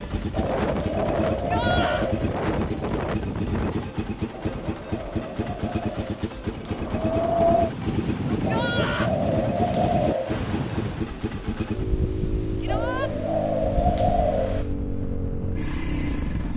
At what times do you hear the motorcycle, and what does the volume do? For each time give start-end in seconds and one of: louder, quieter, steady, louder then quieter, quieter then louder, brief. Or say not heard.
0.0-16.5 steady.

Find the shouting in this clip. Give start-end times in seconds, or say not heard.
1.3-2.1, 8.3-9.1, 12.6-13.1.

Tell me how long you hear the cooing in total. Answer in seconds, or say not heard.
8 s.